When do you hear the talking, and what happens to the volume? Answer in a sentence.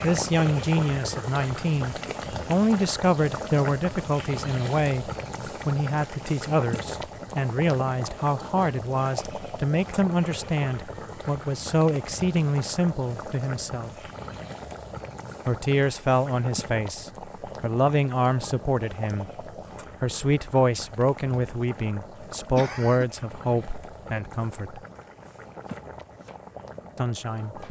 The talking can be heard from 0.0 to 13.9 s, at a steady volume; from 15.4 to 24.8 s, at a steady volume; and briefly from 26.9 to 27.6 s.